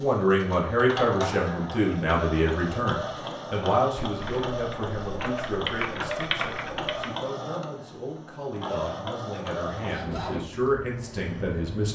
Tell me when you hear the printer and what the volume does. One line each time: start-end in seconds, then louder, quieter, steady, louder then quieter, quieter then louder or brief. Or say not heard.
0.0-11.9 steady.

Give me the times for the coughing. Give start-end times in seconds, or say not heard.
not heard.